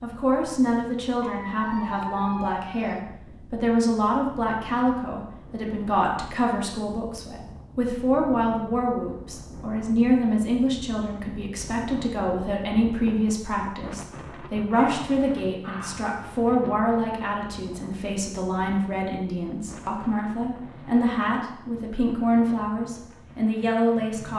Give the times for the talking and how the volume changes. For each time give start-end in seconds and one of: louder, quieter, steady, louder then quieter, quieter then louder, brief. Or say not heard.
0.0-24.3 steady.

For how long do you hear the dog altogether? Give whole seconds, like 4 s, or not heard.
3 s.